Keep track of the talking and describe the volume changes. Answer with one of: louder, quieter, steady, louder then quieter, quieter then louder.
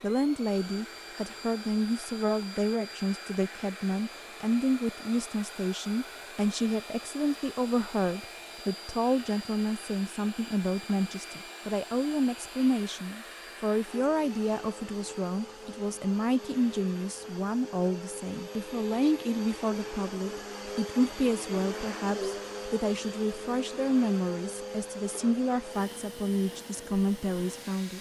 steady.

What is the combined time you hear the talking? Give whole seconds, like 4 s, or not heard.
28 s.